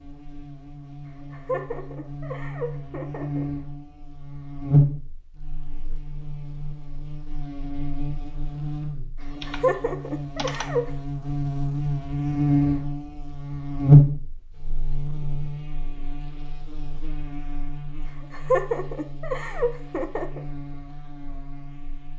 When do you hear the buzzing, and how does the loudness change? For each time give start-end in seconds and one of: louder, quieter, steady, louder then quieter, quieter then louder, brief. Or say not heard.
0.0-22.1 louder then quieter.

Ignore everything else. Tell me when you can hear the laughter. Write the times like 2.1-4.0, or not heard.
1.1-3.5, 9.2-10.9, 18.1-20.4.